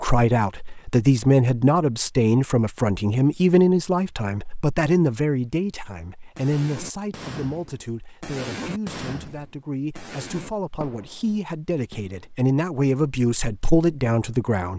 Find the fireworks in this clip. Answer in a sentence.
The fireworks can be heard from 6.3 to 12.2 s.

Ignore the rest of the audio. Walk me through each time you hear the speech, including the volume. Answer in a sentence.
The speech can be heard from 0.0 to 14.7 s, getting quieter then louder.